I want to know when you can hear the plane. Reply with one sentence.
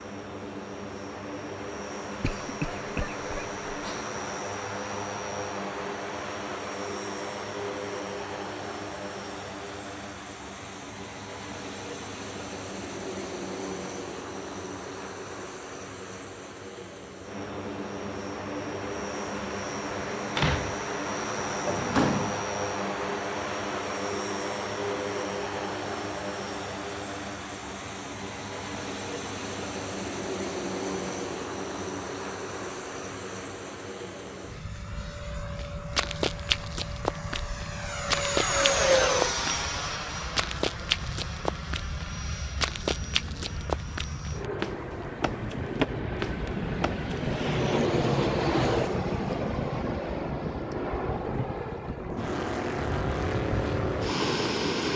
You can hear the plane from 0.0 to 54.9 s.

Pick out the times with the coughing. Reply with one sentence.
You can hear the coughing from 2.2 to 4.0 s.